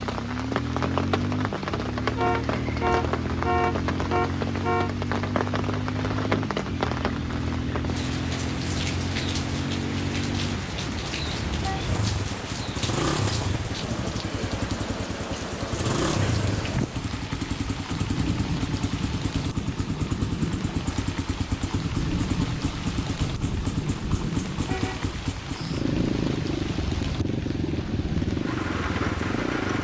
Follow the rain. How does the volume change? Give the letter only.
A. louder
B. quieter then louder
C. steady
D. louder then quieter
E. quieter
C.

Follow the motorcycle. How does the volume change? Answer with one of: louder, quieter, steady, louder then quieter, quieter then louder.
steady.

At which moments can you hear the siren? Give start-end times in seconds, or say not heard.
not heard.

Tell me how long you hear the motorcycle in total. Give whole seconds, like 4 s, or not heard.
30 s.